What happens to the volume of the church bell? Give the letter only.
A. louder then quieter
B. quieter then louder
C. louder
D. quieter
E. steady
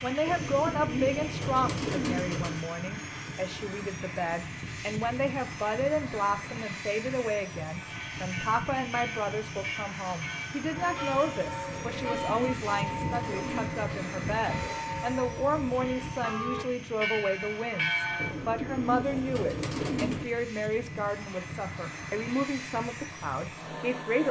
C.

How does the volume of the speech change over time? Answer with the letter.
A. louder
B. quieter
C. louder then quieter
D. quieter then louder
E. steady
E.